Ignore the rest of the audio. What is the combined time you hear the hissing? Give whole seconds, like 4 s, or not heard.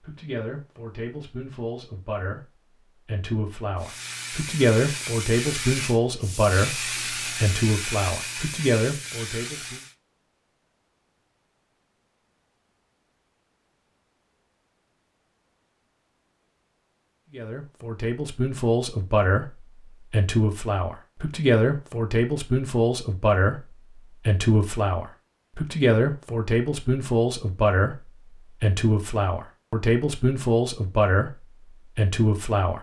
6 s.